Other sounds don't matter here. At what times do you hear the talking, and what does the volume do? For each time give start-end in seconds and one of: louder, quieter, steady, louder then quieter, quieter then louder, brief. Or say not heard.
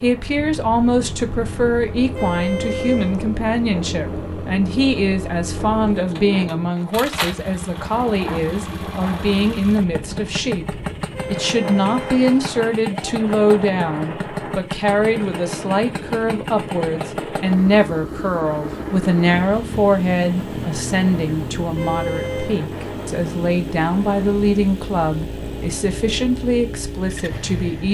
0.0-27.8 steady.